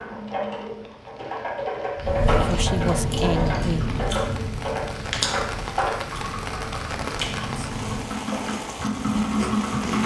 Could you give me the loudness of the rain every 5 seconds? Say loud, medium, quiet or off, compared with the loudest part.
medium, loud.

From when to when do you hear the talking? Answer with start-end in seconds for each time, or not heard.
2.4-3.9.